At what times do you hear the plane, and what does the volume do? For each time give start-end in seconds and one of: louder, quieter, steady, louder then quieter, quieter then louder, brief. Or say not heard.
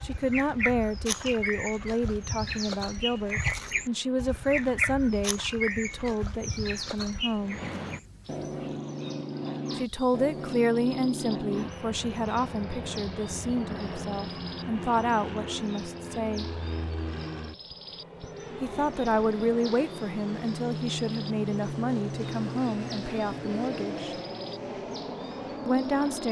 0.0-26.2 louder.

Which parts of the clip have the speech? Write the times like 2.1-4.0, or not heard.
0.0-7.6, 9.8-16.6, 18.6-24.1, 25.6-26.2.